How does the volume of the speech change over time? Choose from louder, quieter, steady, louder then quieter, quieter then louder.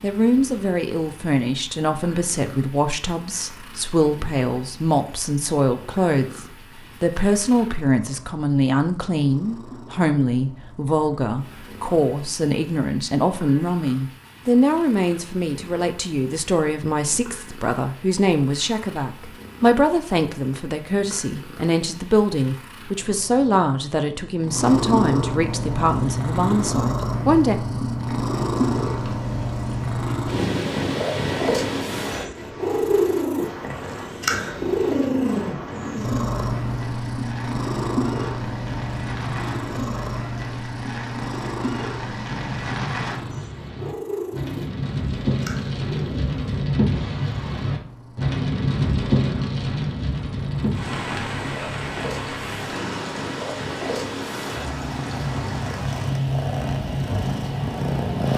steady.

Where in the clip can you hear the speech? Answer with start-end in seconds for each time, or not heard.
0.0-27.6.